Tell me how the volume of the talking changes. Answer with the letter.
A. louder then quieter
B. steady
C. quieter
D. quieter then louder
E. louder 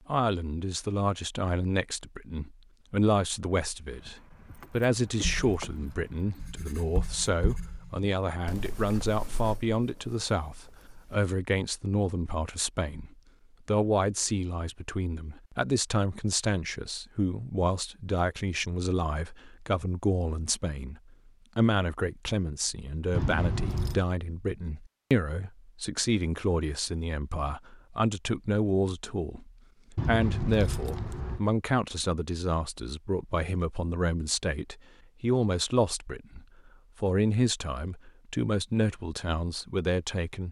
B.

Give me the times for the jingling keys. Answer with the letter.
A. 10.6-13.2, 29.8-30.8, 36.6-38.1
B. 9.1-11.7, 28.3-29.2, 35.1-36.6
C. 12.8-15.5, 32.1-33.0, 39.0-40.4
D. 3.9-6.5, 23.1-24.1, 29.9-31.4
D.